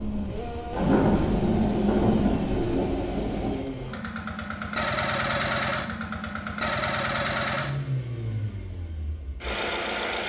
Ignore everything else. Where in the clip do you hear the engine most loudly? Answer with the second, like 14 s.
5 s.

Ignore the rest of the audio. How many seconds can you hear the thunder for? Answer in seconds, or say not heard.
3 s.